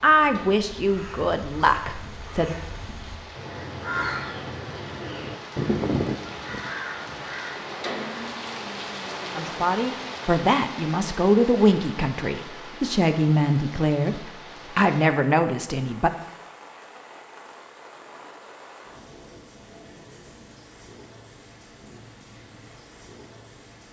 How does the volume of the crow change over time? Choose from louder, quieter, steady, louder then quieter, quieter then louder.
louder.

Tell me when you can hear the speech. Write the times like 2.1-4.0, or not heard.
0.0-2.5, 9.3-16.1.